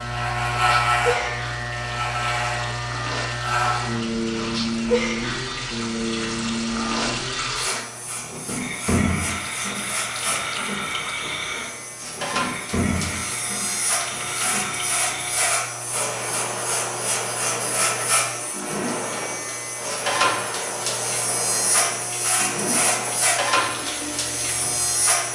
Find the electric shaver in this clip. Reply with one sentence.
The electric shaver can be heard from 0.0 to 25.3 s.